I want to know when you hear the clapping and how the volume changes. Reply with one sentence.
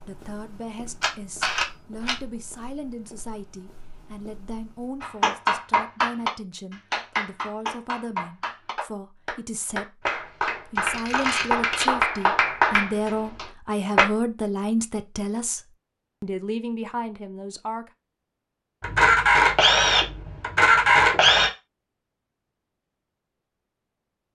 You can hear the clapping from 5.0 to 14.1 s, getting quieter then louder.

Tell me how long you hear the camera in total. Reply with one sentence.
The camera can be heard for 5 seconds in total.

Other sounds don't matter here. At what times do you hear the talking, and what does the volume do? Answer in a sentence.
You can hear the talking from 0.0 to 17.9 s, getting louder.